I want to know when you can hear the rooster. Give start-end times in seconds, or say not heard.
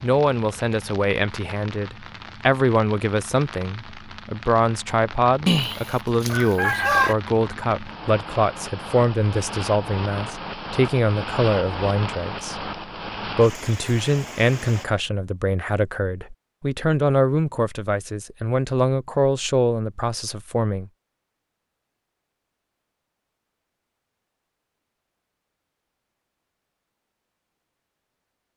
5.5-7.2.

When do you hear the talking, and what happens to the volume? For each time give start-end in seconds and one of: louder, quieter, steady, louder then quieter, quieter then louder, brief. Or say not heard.
0.0-20.9 steady.